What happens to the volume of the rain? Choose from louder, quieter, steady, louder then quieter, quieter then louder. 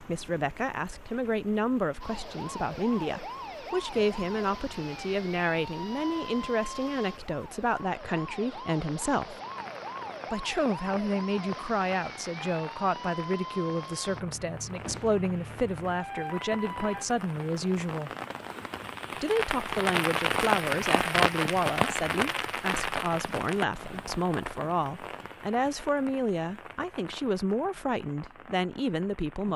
louder then quieter.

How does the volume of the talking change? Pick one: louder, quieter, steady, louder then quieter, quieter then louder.
steady.